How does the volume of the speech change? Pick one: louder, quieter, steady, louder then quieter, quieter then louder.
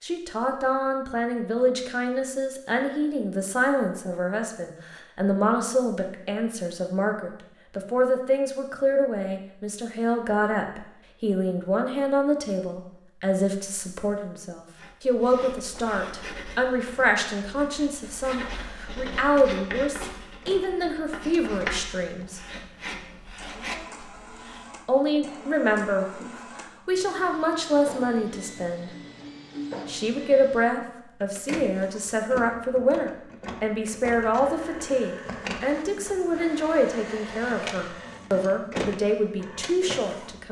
steady.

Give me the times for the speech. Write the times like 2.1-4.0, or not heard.
0.0-22.4, 24.9-28.9, 29.9-40.4.